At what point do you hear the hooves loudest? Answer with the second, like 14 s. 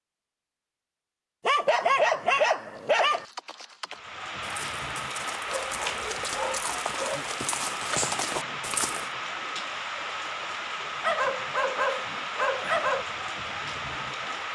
8 s.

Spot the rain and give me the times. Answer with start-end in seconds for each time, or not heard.
3.9-14.5.